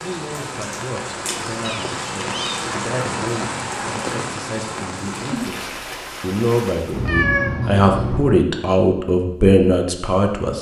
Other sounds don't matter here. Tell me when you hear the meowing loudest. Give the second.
7 s.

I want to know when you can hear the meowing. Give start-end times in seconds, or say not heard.
1.6-2.6, 6.9-8.4.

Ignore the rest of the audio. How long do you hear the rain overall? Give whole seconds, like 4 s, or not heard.
7 s.